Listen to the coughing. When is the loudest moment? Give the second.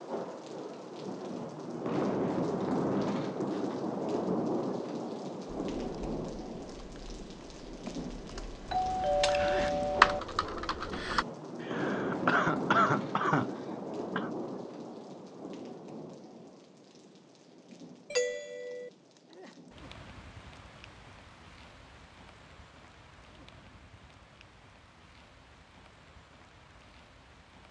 13 s.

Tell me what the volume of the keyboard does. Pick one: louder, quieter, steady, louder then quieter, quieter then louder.
louder.